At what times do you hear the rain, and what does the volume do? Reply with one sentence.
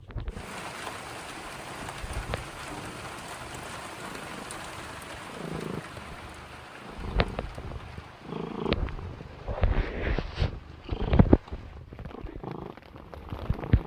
The rain can be heard from 0.2 to 13.8 s, getting quieter.